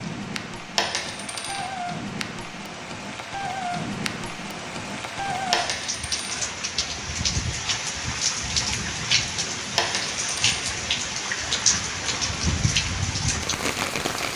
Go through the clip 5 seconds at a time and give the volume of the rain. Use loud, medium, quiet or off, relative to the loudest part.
medium, loud, loud.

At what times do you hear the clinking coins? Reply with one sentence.
The clinking coins can be heard from 0.8 to 1.6 s, from 5.5 to 6.4 s and from 9.8 to 10.7 s.